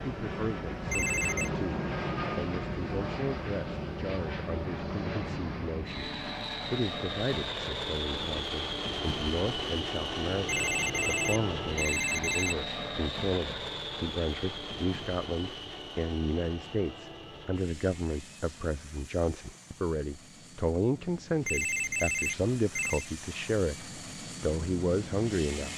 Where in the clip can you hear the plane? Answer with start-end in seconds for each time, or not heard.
0.0-25.7.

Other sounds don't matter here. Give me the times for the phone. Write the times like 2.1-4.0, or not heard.
0.8-1.5, 10.4-12.6, 21.4-23.1.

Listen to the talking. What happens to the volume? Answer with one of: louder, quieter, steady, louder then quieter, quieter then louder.
louder.